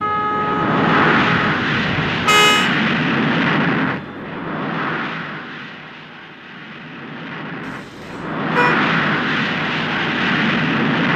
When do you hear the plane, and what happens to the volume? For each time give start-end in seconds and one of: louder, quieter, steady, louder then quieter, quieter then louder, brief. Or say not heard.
0.0-11.1 quieter then louder.